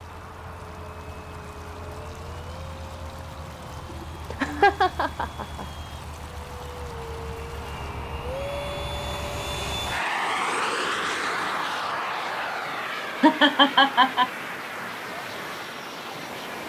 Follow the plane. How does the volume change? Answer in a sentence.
The volume of the plane goes up, then down.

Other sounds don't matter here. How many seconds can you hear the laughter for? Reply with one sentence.
You can hear the laughter for 3 seconds altogether.